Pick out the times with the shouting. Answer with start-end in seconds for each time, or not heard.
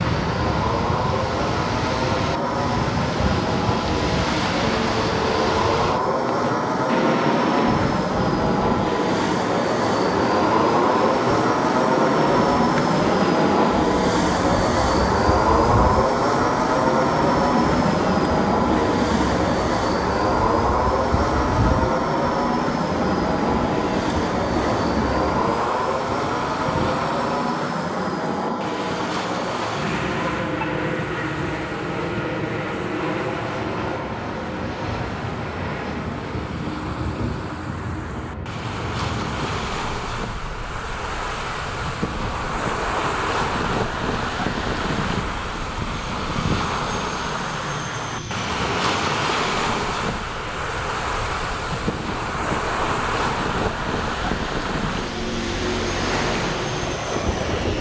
not heard.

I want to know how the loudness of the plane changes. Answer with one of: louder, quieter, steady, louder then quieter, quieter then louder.
quieter.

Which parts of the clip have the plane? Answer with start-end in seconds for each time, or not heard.
0.0-57.7.